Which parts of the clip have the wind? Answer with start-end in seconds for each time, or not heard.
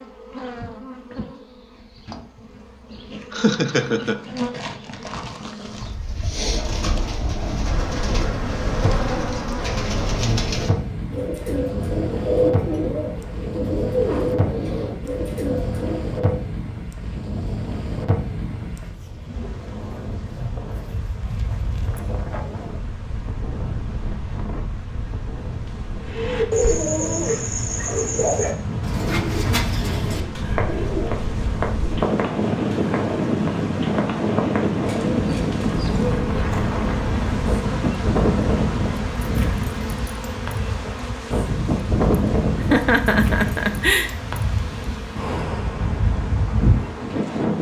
7.2-47.5.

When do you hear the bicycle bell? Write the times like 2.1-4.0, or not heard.
not heard.